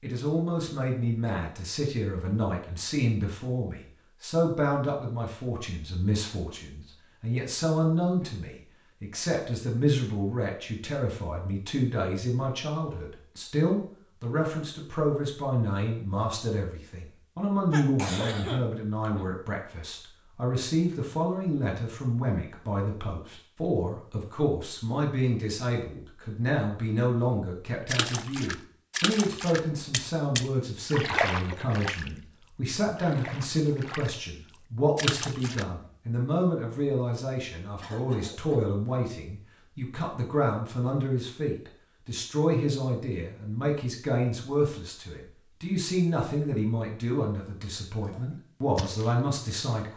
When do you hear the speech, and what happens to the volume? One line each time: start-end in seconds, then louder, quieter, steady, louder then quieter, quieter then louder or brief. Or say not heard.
0.0-49.9 steady.